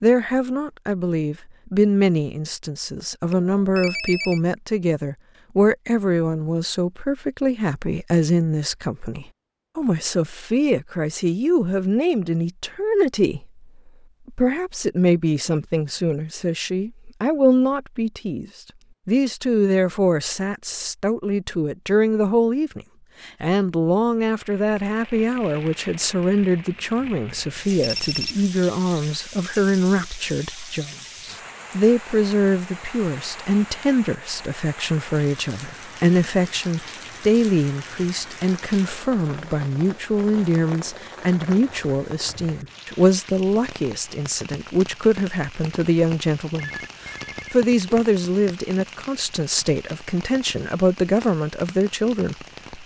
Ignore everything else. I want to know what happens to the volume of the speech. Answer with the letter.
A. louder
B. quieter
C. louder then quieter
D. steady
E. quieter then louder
D.